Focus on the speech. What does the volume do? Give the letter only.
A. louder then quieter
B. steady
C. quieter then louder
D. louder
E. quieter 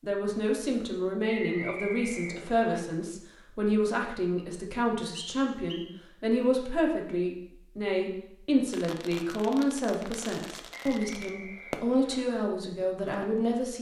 B.